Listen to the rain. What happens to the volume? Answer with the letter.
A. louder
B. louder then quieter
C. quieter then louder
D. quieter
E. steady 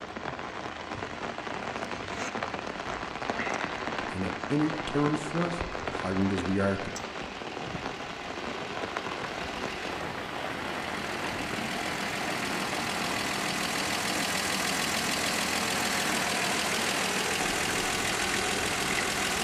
E.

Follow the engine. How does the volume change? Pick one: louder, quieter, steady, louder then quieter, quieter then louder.
louder.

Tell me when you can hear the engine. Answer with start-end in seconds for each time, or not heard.
0.0-19.3.